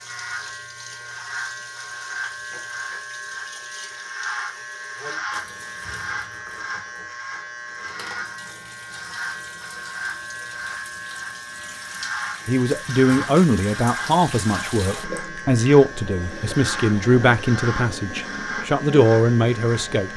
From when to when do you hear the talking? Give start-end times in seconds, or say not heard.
12.4-20.1.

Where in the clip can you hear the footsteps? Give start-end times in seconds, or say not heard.
not heard.